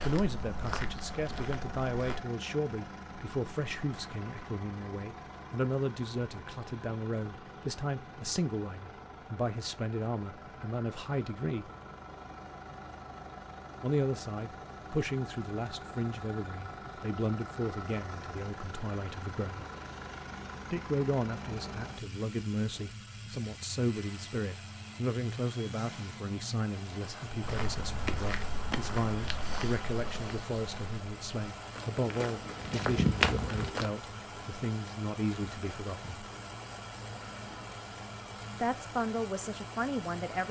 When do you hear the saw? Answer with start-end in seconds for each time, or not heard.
not heard.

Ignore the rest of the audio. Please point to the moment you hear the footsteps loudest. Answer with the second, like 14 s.
33 s.